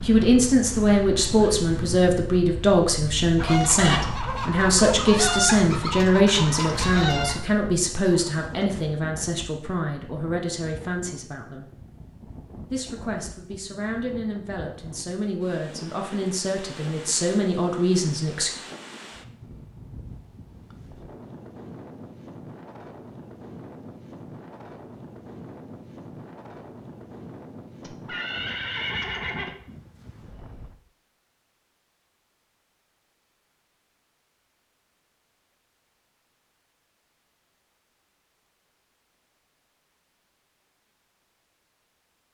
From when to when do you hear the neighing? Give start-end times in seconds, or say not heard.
27.8-29.6.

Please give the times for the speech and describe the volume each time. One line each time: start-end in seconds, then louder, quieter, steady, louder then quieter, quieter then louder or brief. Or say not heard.
0.1-11.7 quieter
12.7-18.5 louder.